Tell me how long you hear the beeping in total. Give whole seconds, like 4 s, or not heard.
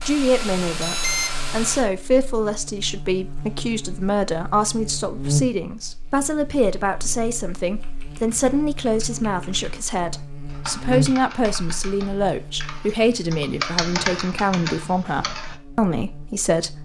2 s.